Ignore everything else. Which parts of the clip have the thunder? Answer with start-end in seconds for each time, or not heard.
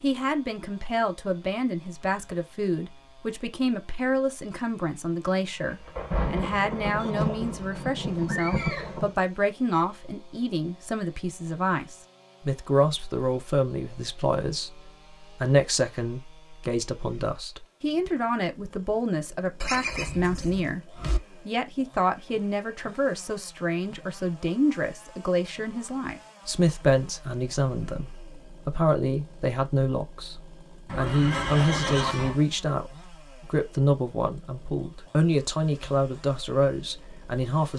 5.7-9.2.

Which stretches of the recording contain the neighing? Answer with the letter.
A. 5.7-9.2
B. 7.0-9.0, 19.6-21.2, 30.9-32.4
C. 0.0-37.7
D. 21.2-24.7
B.